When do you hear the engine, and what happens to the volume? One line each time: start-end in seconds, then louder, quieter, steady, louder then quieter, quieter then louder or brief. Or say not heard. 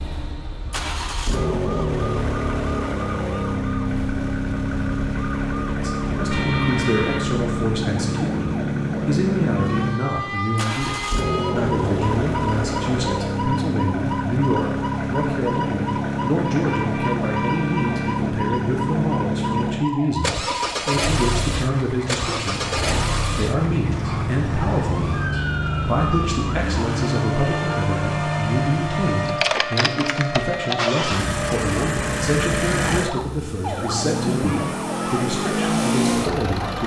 0.0-36.8 steady.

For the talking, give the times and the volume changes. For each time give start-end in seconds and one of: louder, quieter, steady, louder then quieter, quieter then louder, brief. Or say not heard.
5.8-36.8 steady.